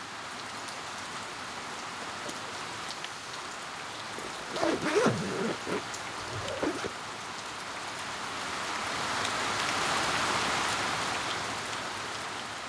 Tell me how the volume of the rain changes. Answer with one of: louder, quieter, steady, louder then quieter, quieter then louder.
louder.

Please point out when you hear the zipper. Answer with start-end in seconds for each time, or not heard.
4.2-6.9.